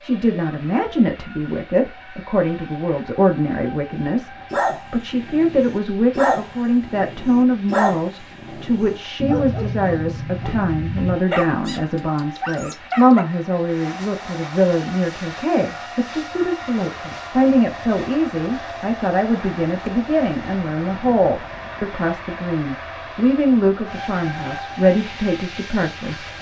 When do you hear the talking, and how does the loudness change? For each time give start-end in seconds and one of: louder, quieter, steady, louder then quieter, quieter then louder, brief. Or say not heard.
0.0-26.2 steady.